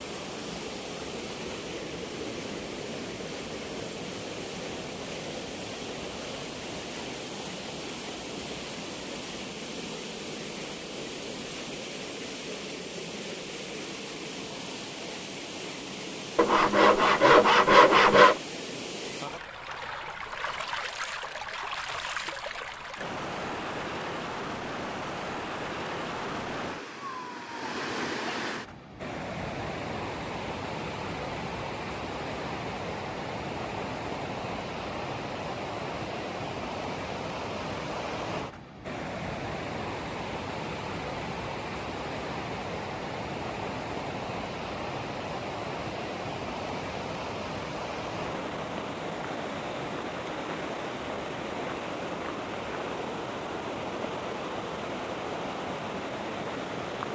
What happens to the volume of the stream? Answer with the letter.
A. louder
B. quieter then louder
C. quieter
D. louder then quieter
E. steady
E.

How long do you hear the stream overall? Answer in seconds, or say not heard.
57 s.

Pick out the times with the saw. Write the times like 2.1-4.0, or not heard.
16.4-18.4.